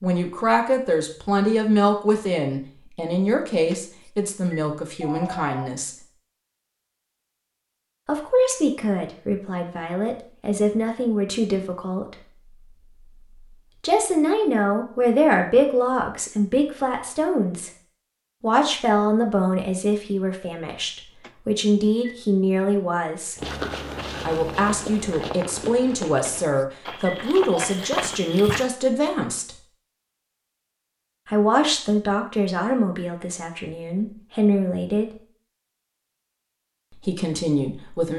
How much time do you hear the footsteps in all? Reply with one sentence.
The footsteps can be heard for 5 seconds in total.